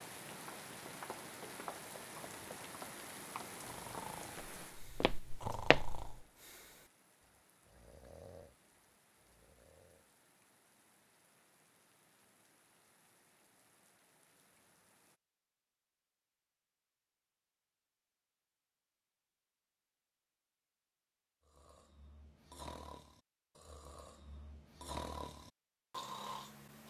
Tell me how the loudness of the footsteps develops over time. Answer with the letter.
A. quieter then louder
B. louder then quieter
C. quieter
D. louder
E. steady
A.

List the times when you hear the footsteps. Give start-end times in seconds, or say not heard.
0.3-6.2.